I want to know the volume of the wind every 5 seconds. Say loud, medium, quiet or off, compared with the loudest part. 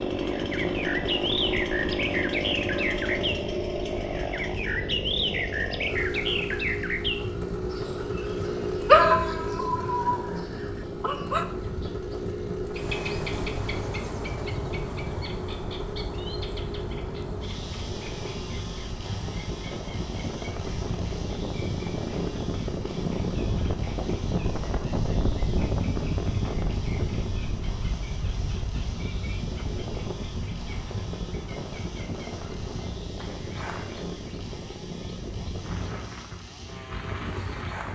medium, medium, medium, medium, loud, loud, medium, medium.